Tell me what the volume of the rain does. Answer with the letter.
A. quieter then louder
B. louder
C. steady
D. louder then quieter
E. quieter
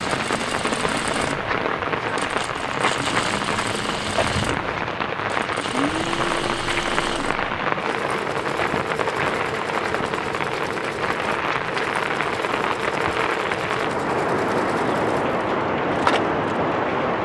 C.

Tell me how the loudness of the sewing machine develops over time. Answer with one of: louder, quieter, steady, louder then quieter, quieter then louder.
steady.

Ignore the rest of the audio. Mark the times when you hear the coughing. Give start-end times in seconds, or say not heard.
not heard.